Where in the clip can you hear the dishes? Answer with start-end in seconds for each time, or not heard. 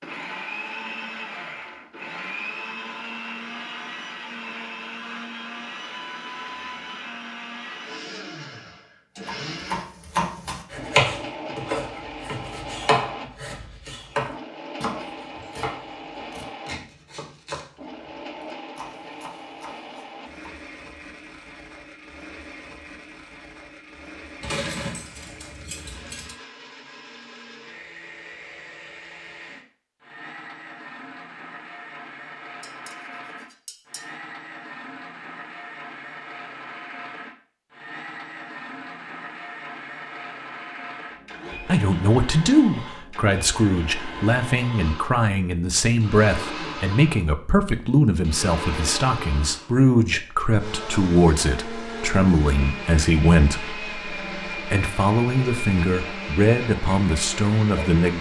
24.4-26.4, 32.6-34.0.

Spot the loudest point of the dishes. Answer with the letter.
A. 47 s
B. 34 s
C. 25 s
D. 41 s
C.